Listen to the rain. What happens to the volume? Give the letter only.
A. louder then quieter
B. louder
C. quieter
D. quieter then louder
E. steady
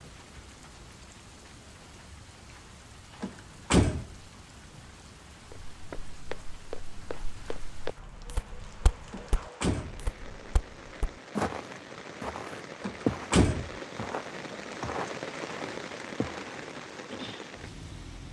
B.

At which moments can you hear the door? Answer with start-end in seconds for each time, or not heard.
3.2-4.1, 9.1-10.0, 12.8-13.7.